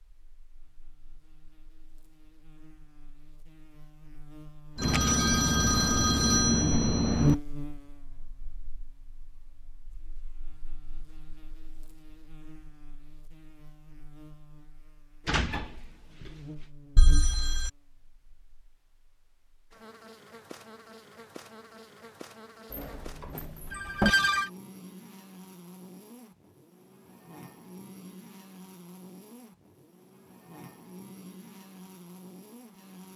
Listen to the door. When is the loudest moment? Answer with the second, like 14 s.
24 s.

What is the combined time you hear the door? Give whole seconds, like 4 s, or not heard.
3 s.